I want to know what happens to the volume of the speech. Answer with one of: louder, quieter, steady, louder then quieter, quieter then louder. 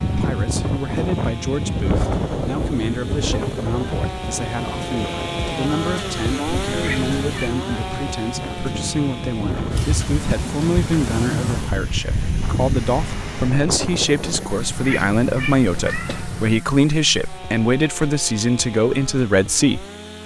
louder.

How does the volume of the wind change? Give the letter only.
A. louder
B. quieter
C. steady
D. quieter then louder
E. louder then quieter
D.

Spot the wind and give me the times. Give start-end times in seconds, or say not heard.
0.0-14.5.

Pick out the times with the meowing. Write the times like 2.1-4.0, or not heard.
6.7-7.5, 14.4-16.5.